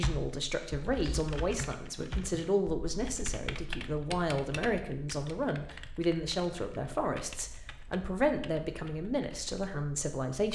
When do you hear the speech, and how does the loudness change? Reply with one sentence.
The speech can be heard from 0.0 to 10.5 s, at a steady volume.